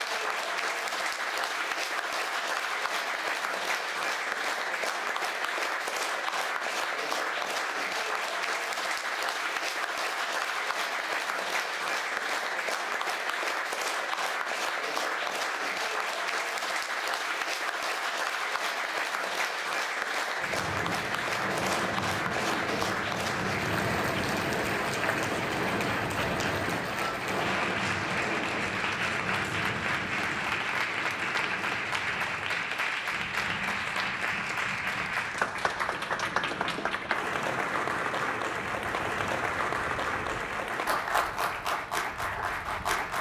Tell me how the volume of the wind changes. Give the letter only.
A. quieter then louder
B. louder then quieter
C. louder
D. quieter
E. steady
D.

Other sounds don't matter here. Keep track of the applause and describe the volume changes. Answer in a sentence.
The volume of the applause stays about the same.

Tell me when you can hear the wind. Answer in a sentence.
You can hear the wind from 20.4 to 43.1 s.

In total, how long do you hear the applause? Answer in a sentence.
The applause can be heard for 43 seconds in total.